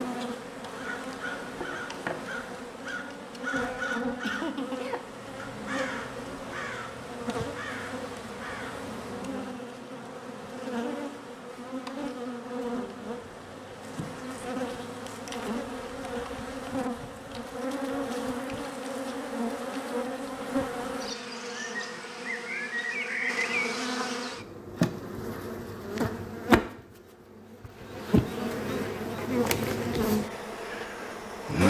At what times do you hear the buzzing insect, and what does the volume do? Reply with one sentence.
You can hear the buzzing insect from 0.0 to 31.6 s, getting louder.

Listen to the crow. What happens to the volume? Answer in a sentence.
The loudness of the crow goes up, then down.